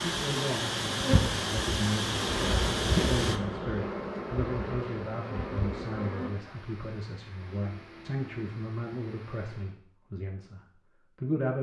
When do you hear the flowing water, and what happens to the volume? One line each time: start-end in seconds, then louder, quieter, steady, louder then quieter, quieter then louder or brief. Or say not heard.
0.0-9.8 quieter.